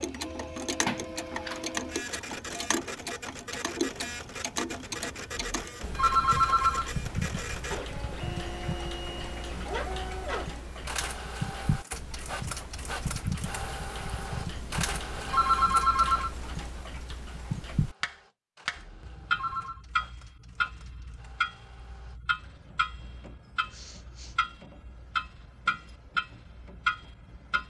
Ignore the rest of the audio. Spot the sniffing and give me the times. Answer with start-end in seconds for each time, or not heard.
23.7-24.4.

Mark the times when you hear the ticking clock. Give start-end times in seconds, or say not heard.
0.0-27.6.